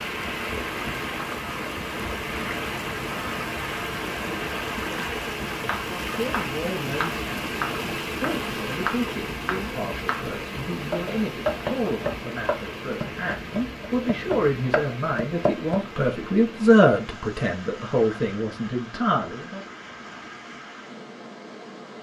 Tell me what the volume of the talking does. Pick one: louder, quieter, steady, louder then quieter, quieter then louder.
louder.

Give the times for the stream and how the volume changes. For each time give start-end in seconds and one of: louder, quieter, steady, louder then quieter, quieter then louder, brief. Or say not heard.
0.0-21.9 quieter.